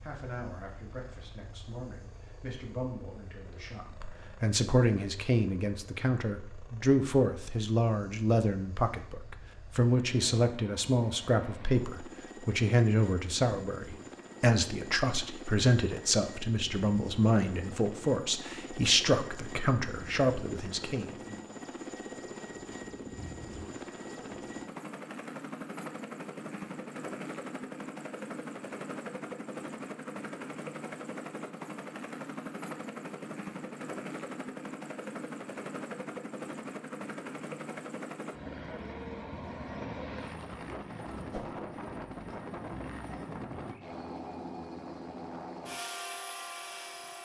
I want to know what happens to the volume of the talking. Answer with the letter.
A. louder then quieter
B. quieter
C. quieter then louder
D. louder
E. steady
D.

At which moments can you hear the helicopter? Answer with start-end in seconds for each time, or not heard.
0.0-47.2.